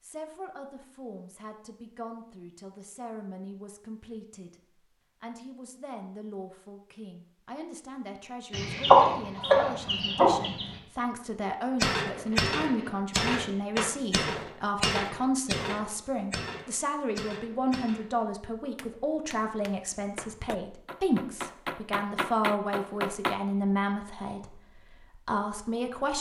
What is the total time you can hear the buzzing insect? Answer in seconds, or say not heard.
not heard.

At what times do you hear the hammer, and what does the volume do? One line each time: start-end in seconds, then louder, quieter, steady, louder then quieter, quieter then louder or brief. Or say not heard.
11.8-23.4 quieter then louder.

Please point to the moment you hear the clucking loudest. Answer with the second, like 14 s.
9 s.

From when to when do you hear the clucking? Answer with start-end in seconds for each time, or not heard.
8.5-10.7.